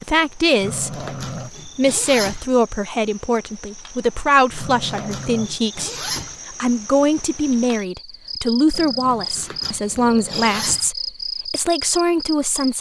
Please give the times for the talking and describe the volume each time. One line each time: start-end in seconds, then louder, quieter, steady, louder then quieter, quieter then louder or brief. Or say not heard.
0.0-1.1 brief
1.8-12.7 steady.